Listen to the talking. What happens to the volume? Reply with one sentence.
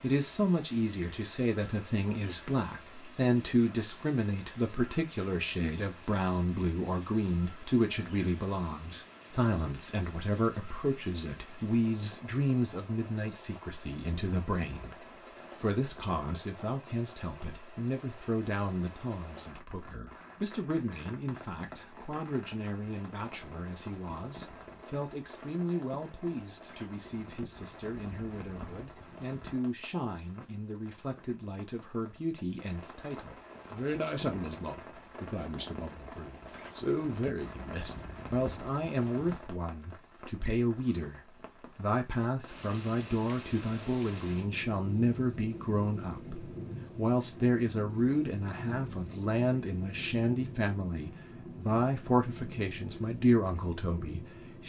The loudness of the talking goes down, then up.